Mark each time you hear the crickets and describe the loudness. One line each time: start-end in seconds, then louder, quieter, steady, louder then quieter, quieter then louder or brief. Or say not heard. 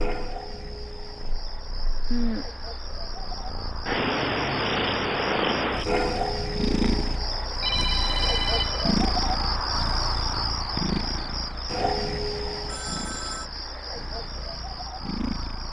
0.0-15.6 louder then quieter.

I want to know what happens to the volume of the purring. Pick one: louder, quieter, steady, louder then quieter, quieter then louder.
louder then quieter.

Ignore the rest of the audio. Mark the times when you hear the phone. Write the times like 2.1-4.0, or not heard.
2.1-2.6, 7.6-8.8, 12.7-13.4.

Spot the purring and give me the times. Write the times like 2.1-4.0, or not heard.
0.1-15.6.